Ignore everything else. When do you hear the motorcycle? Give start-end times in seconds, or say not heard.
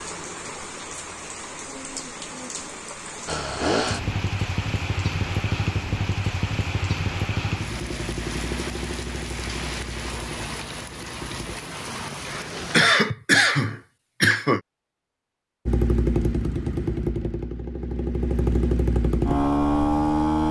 3.2-11.6, 15.7-20.4.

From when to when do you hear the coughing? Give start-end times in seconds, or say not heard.
12.2-14.6.